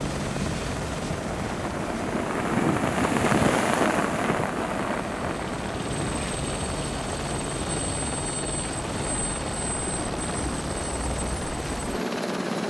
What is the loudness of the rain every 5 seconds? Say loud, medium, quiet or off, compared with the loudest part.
loud, medium, medium.